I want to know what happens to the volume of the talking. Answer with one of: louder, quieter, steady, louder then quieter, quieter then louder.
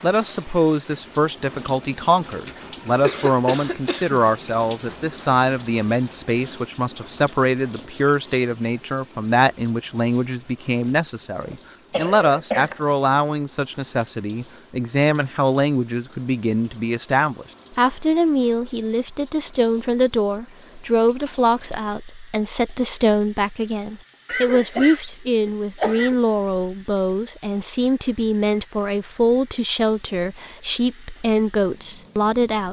steady.